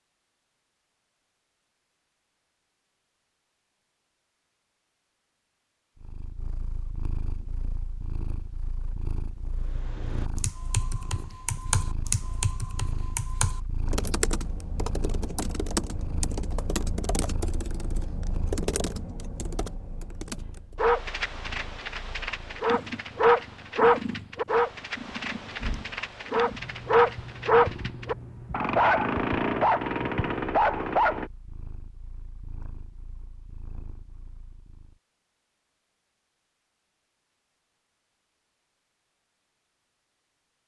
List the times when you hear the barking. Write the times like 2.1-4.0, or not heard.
20.8-31.3.